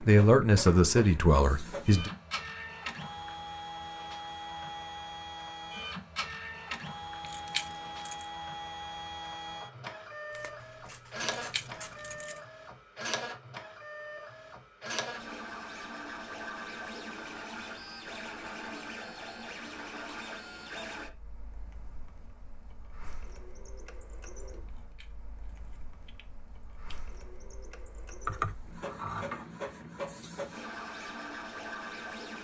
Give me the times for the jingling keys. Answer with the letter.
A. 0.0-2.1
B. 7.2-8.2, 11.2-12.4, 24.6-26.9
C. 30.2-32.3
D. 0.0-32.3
B.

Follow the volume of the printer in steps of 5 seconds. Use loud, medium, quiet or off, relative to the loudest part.
loud, loud, loud, loud, medium, medium, loud.